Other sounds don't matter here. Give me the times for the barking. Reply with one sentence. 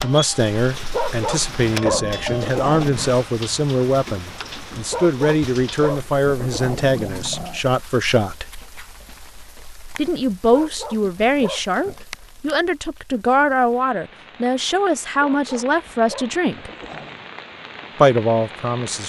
You can hear the barking from 0.9 to 3.0 s, from 4.9 to 7.6 s, from 10.5 to 12.1 s and from 15.2 to 17.3 s.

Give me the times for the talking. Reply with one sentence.
You can hear the talking from 0.0 to 8.4 s, from 9.9 to 16.7 s and from 17.9 to 19.0 s.